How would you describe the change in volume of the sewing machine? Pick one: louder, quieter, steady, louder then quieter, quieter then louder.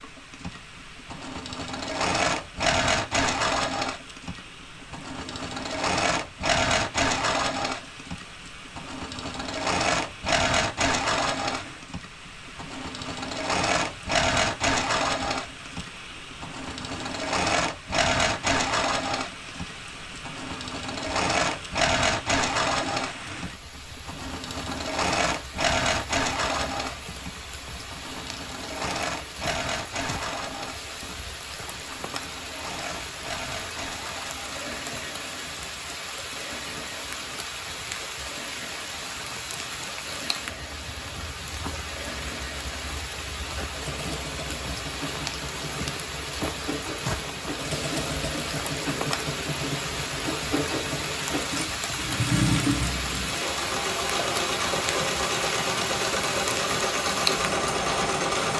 quieter then louder.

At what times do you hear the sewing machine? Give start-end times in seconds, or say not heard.
0.0-58.5.